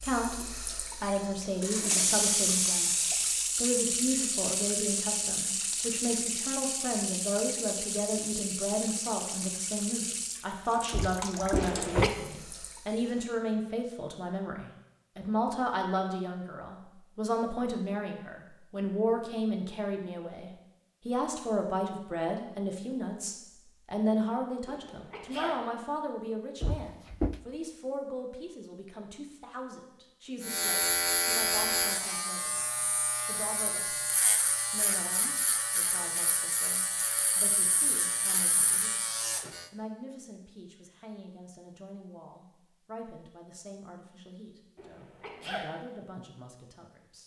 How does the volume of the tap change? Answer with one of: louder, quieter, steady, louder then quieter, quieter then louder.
quieter.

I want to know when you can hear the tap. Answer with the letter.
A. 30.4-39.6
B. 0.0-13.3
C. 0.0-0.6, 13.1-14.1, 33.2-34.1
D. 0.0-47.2
B.